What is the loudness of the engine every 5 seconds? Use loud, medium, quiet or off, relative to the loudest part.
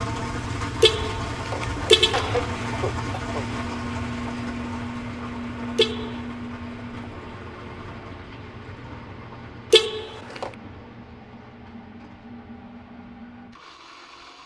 loud, medium, quiet.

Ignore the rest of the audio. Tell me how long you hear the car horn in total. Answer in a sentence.
You can hear the car horn for 3 seconds altogether.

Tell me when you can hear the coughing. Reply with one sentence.
You can hear the coughing from 2.1 to 3.5 s.